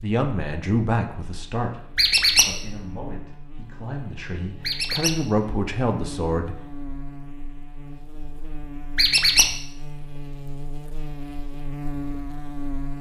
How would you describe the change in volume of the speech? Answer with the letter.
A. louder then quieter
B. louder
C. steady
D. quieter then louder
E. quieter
D.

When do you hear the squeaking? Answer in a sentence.
You can hear the squeaking from 1.9 to 2.5 s, from 4.6 to 5.2 s and from 8.9 to 9.6 s.